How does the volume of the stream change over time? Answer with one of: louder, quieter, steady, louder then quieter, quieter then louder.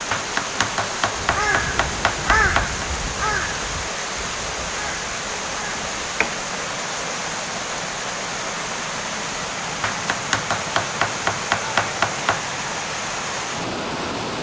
steady.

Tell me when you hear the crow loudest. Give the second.
2 s.